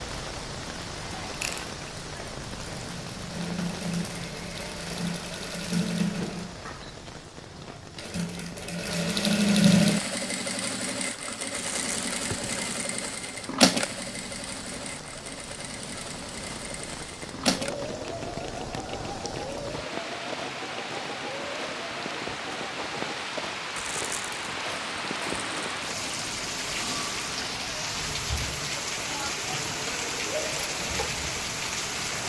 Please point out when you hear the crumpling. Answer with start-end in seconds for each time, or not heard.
11.5-12.8, 23.8-24.6.